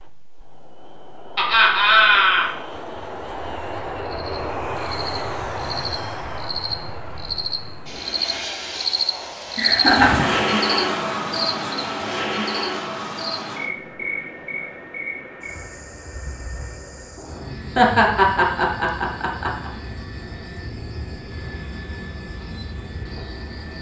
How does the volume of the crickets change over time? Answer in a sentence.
The volume of the crickets goes up, then down.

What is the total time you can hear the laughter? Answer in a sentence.
You can hear the laughter for 4 seconds altogether.